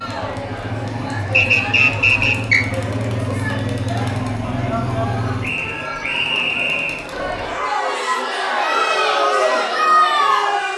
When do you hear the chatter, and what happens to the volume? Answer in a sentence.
The chatter can be heard from 0.0 to 10.7 s, getting louder.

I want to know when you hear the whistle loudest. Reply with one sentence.
The volume of the whistle peaks at 2 seconds.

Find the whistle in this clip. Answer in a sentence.
You can hear the whistle from 1.3 to 2.6 s and from 5.4 to 7.0 s.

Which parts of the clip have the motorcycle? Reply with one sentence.
You can hear the motorcycle from 0.0 to 5.7 s.